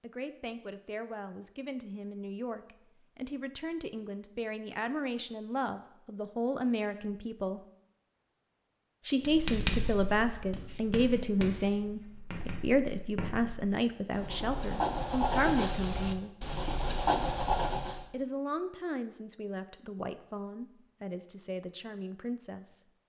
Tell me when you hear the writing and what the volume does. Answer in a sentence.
You can hear the writing from 9.2 to 18.1 s, getting quieter then louder.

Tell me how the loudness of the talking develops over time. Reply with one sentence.
The volume of the talking goes up, then down.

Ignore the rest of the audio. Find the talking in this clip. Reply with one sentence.
The talking can be heard from 0.0 to 7.6 s, from 9.1 to 16.3 s and from 18.1 to 22.9 s.